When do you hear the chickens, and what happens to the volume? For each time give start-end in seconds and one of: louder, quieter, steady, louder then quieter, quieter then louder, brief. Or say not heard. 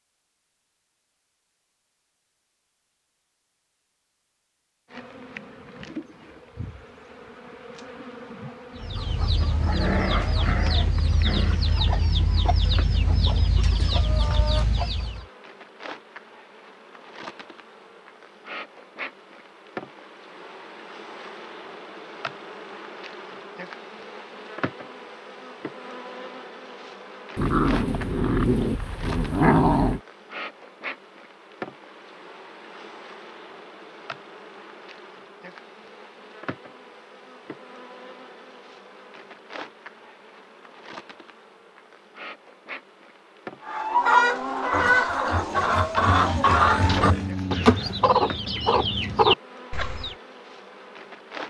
8.8-15.2 steady
43.6-50.1 steady.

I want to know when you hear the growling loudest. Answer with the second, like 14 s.
30 s.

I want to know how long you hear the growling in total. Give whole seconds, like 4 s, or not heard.
7 s.